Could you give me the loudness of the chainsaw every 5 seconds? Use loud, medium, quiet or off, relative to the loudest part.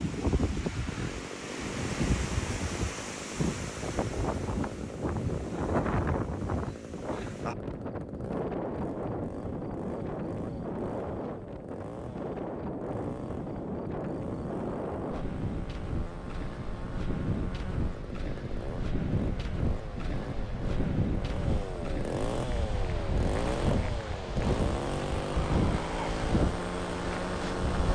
medium, medium, medium, medium, loud, loud.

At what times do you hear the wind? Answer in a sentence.
The wind can be heard from 0.0 to 27.9 s.